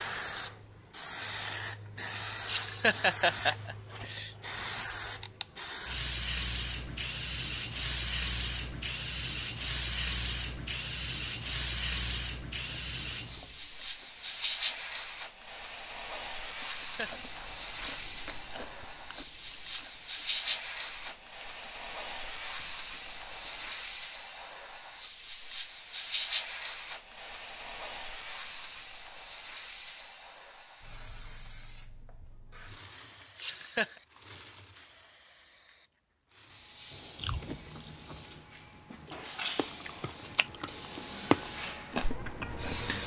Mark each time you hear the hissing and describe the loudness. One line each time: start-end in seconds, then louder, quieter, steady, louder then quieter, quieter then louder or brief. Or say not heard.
0.0-43.0 quieter.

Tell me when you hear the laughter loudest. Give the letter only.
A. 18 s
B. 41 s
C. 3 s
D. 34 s
C.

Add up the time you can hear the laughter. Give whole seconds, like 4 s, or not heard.
3 s.